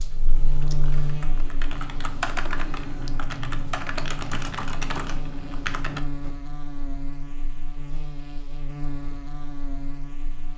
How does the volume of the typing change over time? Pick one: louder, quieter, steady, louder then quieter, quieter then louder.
louder.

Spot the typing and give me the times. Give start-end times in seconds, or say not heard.
0.2-6.3.